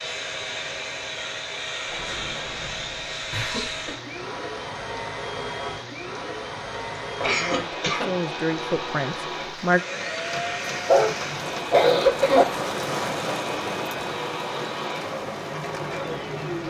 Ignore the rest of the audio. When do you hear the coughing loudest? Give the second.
12 s.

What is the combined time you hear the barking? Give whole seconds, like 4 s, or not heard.
2 s.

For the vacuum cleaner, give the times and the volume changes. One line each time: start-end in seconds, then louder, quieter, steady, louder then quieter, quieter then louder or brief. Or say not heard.
0.0-16.6 steady.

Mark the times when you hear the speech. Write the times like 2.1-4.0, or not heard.
7.3-9.8.